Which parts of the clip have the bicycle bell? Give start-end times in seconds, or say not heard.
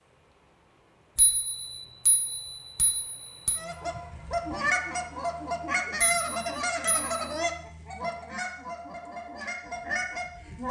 1.1-3.6, 6.0-7.2.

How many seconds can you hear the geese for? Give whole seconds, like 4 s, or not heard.
7 s.